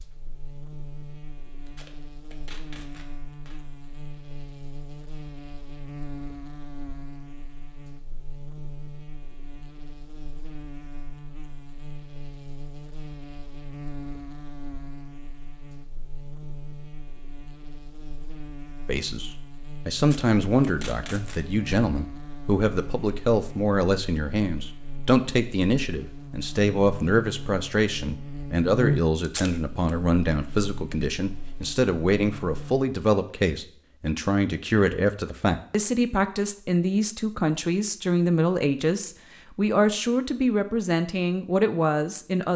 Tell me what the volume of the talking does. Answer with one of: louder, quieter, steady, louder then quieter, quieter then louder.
steady.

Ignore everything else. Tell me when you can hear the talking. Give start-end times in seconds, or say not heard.
18.9-42.5.